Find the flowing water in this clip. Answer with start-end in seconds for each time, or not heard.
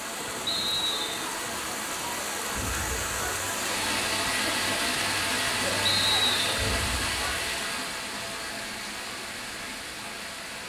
0.0-10.6.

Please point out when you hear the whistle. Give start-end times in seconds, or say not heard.
0.5-1.3, 5.8-6.5.